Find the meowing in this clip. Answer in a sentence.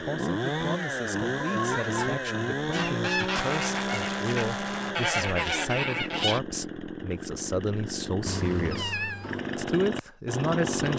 The meowing can be heard from 1.4 to 2.5 s and from 8.2 to 9.4 s.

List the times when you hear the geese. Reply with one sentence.
The geese can be heard from 2.7 to 6.4 s.